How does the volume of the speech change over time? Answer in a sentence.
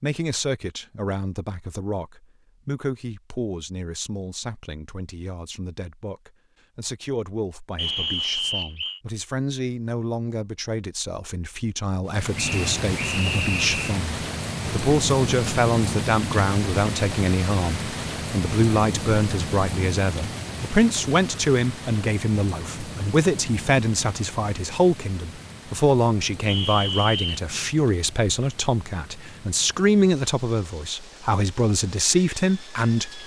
The volume of the speech goes up.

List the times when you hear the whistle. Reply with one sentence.
The whistle can be heard from 7.8 to 9.0 s, from 12.3 to 14.0 s and from 26.4 to 27.4 s.